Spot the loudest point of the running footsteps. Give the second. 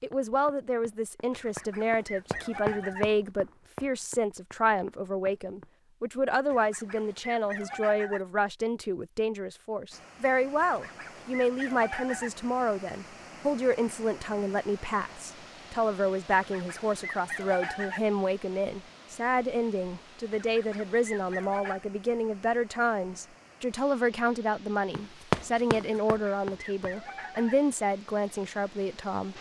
25 s.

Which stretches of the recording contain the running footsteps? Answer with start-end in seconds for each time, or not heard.
0.0-5.8, 24.9-26.8.